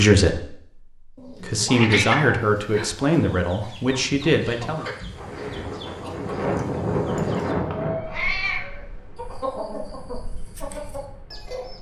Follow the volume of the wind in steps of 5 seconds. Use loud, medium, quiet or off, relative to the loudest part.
off, loud, quiet.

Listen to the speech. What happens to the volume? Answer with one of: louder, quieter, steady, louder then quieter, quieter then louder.
louder.